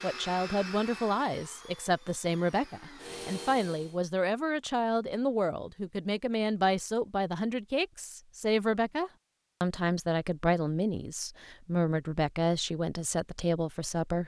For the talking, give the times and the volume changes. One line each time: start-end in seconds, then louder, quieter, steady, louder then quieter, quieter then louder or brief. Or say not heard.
0.0-14.2 steady.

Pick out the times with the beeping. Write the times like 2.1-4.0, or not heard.
not heard.